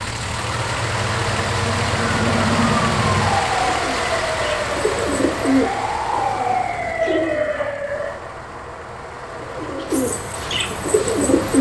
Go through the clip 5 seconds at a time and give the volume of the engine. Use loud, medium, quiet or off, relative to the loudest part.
loud, medium, medium.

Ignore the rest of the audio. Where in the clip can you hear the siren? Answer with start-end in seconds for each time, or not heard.
0.0-8.1.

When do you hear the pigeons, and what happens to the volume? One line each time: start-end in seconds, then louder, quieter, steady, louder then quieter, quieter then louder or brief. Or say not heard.
3.5-7.5 louder then quieter
9.3-11.5 brief.